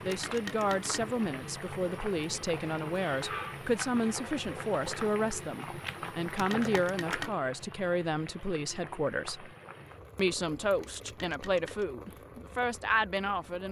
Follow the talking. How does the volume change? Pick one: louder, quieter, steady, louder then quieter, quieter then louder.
steady.